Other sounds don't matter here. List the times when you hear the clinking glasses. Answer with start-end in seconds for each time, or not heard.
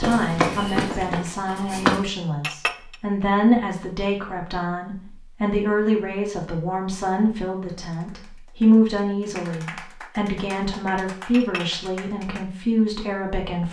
2.4-3.0, 11.3-11.8.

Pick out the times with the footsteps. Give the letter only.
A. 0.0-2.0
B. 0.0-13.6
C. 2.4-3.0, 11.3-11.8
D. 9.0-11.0
A.